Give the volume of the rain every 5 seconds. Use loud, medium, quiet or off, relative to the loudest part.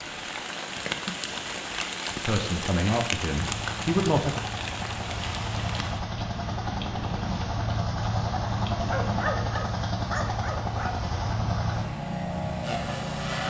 loud, medium, medium.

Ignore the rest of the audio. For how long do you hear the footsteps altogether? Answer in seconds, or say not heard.
not heard.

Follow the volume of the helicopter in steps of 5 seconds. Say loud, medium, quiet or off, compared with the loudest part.
medium, loud, loud.